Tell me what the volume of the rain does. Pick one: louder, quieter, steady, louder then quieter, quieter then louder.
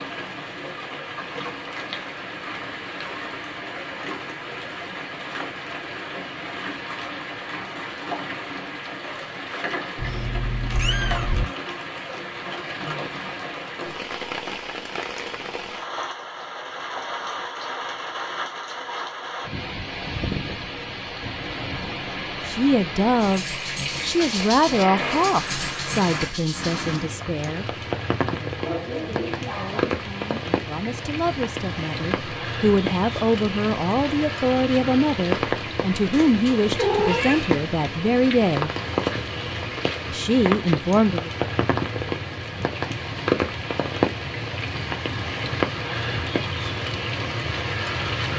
louder.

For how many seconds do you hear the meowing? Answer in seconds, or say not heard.
3 s.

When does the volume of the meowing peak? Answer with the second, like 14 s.
37 s.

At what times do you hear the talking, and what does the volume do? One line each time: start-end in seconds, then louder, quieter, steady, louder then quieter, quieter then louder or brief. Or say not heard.
22.4-38.7 quieter then louder
40.1-41.3 brief.